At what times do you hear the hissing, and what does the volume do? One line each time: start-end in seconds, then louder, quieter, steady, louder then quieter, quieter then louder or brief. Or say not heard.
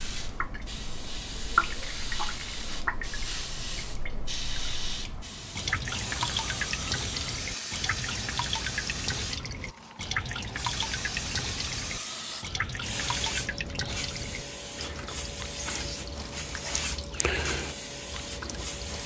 0.0-19.0 steady.